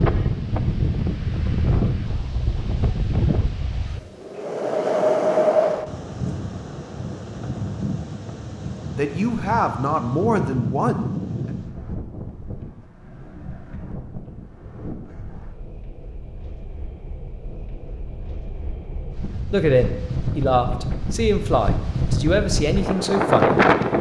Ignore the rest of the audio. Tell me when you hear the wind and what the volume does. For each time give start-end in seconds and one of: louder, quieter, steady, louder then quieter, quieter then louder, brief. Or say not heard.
0.0-23.9 quieter then louder.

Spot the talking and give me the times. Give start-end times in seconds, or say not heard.
8.9-11.1, 19.5-23.6.